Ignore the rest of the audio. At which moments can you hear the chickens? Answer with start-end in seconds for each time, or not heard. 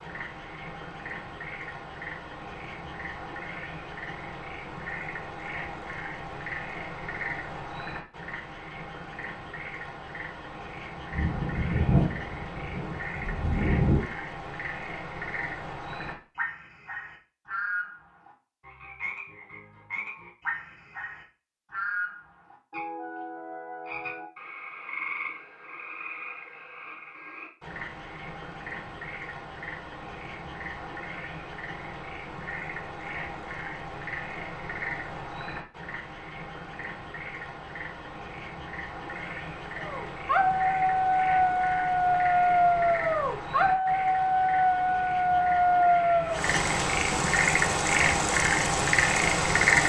not heard.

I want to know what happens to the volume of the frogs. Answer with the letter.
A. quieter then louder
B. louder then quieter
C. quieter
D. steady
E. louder
E.